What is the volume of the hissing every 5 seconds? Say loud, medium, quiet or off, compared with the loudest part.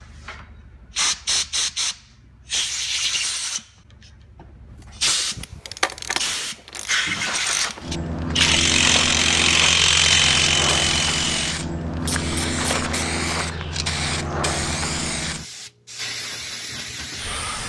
loud, loud, loud, medium.